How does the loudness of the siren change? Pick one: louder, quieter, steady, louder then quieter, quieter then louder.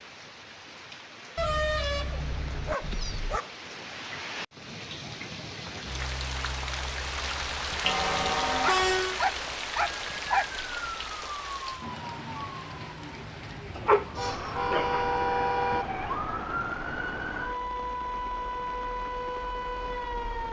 quieter then louder.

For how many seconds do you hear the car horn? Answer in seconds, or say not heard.
5 s.